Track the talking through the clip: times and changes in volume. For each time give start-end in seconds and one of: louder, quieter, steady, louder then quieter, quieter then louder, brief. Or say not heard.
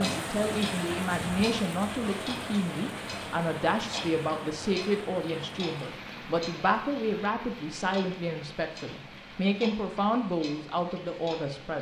0.0-11.7 steady.